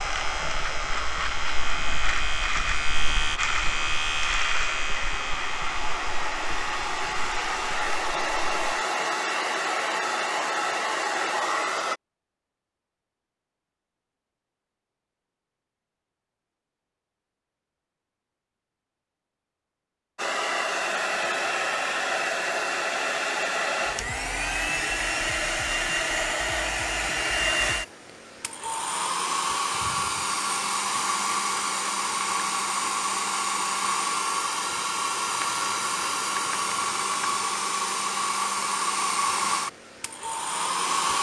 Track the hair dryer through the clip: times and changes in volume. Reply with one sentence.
You can hear the hair dryer from 0.0 to 12.0 s, getting louder; and from 20.1 to 41.1 s, at a steady volume.